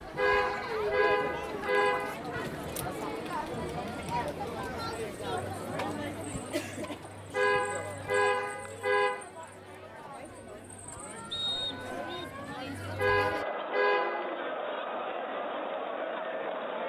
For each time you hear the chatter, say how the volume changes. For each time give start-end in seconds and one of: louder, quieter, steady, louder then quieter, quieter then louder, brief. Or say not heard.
0.0-16.8 quieter then louder.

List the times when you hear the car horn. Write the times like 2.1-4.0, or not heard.
0.1-2.1, 7.3-9.2, 12.9-14.4.